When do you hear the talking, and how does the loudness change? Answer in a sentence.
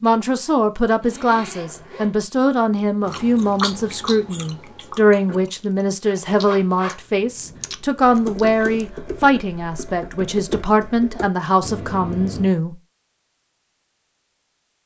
You can hear the talking from 0.0 to 12.8 s, at a steady volume.